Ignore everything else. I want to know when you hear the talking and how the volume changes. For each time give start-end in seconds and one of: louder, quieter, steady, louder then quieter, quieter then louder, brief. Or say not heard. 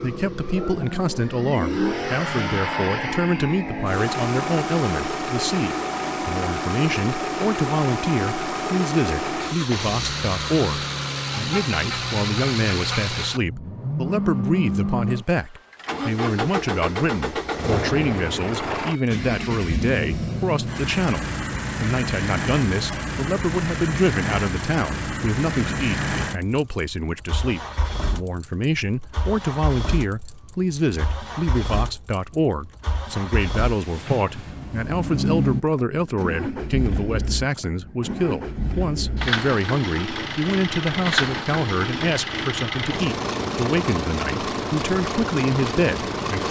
0.0-46.4 steady.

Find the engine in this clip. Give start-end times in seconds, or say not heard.
0.0-46.4.